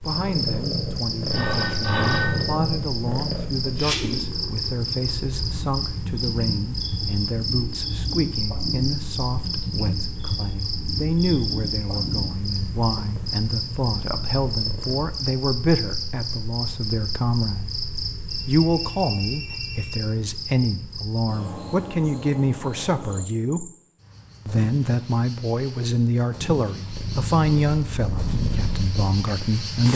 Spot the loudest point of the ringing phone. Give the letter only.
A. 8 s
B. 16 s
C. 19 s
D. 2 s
D.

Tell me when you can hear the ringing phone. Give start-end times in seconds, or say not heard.
1.3-2.6, 18.3-20.0.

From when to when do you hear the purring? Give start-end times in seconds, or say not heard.
0.0-15.1, 26.9-29.9.